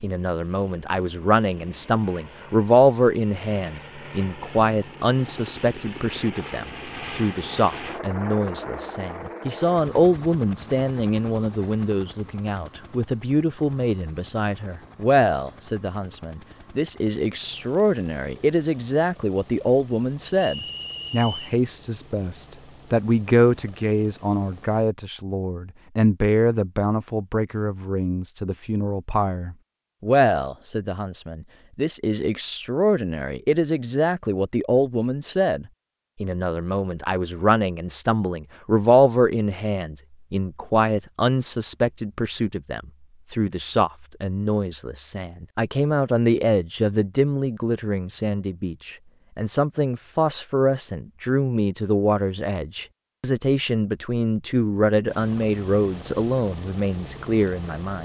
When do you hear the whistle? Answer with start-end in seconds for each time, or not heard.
20.4-21.6.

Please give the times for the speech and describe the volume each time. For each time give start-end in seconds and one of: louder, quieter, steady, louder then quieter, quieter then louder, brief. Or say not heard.
0.0-58.0 steady.